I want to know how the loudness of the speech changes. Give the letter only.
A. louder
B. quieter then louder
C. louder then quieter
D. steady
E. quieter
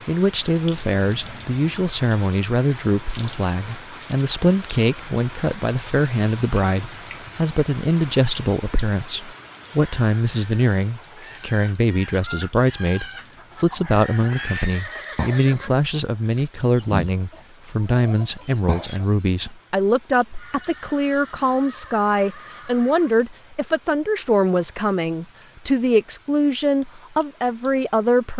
D.